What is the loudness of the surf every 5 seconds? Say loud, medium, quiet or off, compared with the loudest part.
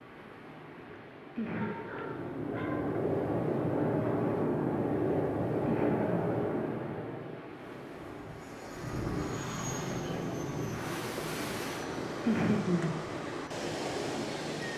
medium, medium, loud.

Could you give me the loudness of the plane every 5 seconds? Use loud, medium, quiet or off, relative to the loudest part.
loud, loud, medium.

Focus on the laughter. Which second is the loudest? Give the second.
12 s.